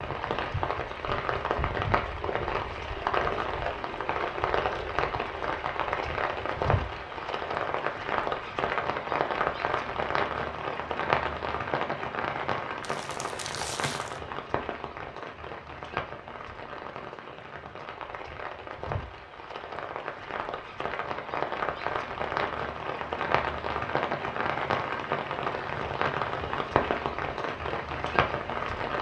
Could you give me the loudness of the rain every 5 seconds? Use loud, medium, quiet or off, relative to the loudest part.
loud, loud, loud, medium, loud, loud.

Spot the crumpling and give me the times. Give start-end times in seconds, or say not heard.
12.8-14.2.